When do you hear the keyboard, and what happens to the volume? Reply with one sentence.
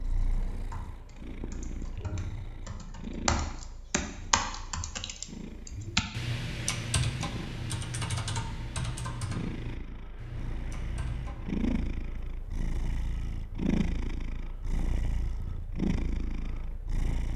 The keyboard can be heard from 0.0 to 11.7 s, getting louder then quieter.